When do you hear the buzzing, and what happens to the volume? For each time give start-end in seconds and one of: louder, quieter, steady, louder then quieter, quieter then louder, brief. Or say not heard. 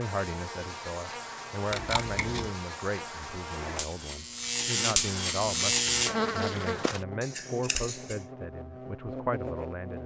0.0-10.0 louder then quieter.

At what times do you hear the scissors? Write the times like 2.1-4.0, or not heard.
1.7-2.5, 7.2-8.2.